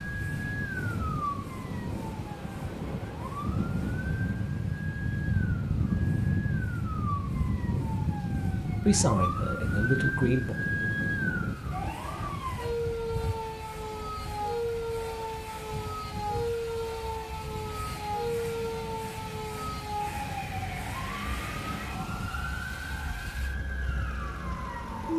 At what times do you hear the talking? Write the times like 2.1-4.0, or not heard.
8.8-10.6.